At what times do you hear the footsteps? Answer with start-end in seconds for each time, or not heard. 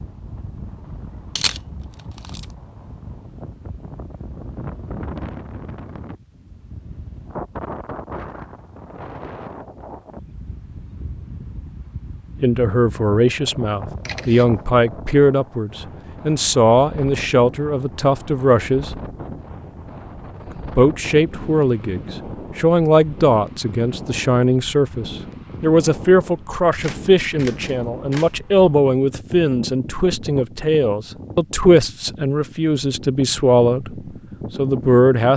not heard.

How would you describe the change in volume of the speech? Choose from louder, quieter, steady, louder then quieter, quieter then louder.
steady.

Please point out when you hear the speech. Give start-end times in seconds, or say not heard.
12.4-18.9, 20.8-35.3.